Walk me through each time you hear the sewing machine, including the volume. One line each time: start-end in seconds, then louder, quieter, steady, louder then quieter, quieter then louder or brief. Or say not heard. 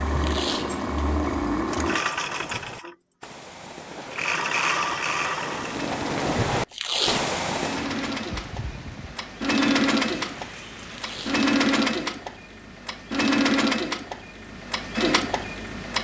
0.0-15.9 quieter then louder.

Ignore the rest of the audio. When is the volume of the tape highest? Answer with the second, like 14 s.
7 s.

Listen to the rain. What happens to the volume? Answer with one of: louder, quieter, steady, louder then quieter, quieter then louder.
louder then quieter.